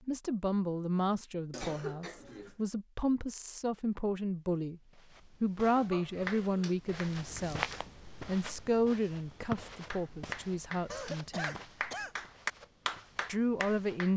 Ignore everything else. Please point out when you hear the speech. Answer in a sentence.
You can hear the speech from 0.1 to 4.8 s, from 5.4 to 7.7 s, from 8.2 to 11.6 s and from 13.2 to 14.1 s.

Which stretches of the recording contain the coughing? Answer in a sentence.
The coughing can be heard from 1.5 to 2.5 s, from 5.7 to 6.8 s and from 10.9 to 12.2 s.